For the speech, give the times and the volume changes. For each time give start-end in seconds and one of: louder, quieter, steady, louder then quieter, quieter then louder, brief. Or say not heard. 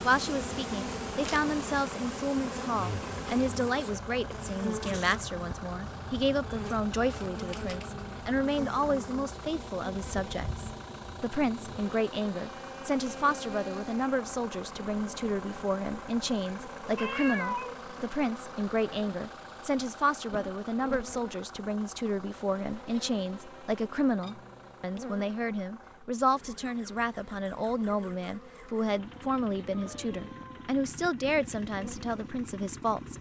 0.0-33.1 steady.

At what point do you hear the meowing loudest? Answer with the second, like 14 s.
17 s.